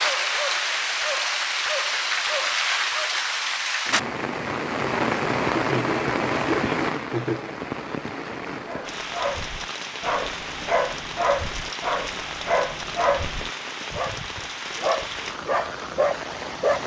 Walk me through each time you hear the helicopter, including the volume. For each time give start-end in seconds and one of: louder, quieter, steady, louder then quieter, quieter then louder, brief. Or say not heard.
not heard.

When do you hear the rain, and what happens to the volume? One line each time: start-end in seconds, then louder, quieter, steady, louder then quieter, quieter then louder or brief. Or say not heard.
0.0-16.8 quieter.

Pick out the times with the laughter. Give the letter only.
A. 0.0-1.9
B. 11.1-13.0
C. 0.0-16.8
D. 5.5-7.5
D.